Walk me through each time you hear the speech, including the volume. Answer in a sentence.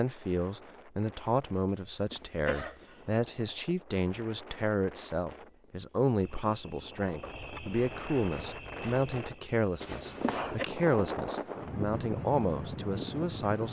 The speech can be heard from 0.0 to 13.6 s, at a steady volume.